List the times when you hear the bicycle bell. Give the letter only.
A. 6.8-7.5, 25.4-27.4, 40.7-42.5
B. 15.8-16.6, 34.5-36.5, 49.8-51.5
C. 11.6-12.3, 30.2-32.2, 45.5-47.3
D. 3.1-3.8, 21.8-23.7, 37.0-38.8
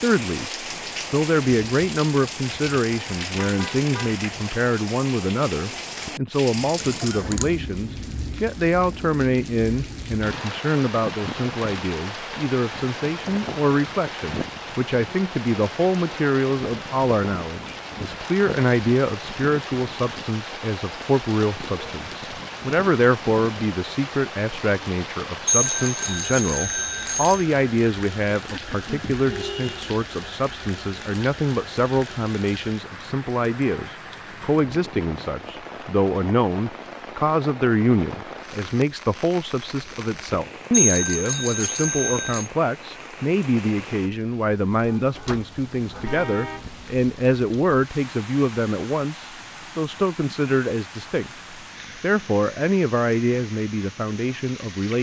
A.